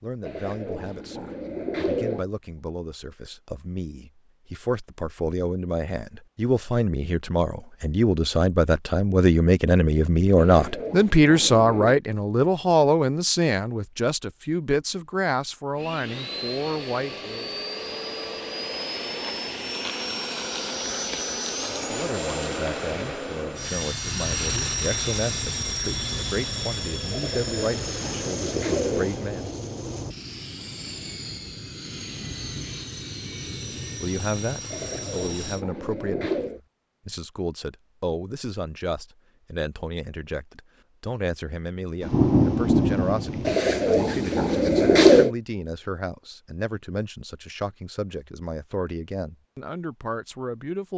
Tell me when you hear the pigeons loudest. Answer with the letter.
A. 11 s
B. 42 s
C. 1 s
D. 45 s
D.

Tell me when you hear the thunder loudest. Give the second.
42 s.